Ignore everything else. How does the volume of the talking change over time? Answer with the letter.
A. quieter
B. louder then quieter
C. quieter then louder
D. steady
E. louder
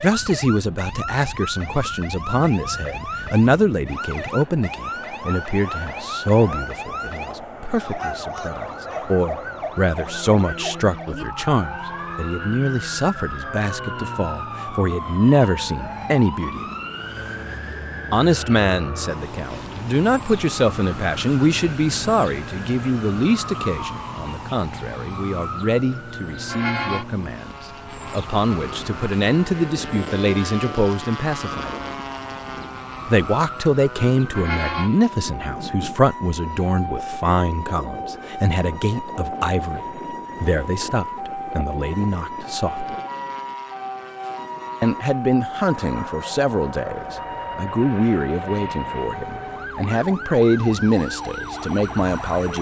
D.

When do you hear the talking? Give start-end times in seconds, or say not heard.
0.0-16.6, 18.1-31.9, 33.0-43.0, 44.8-52.5.